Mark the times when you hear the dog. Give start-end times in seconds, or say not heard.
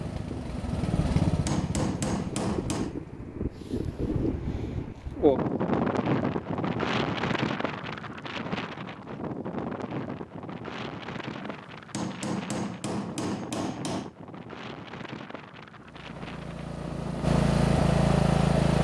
not heard.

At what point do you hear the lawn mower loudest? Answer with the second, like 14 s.
18 s.